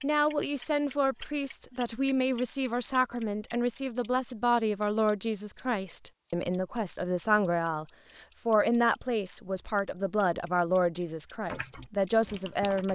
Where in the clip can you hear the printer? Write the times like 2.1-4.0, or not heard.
not heard.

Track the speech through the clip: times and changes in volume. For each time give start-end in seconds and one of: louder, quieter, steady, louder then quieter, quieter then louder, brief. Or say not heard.
0.0-12.9 steady.